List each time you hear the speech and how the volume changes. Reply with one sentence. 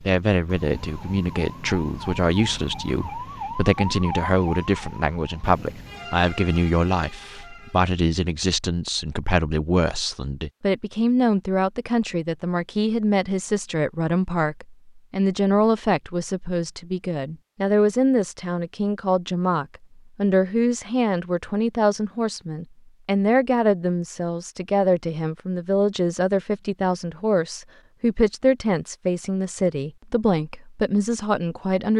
You can hear the speech from 0.0 to 31.9 s, at a steady volume.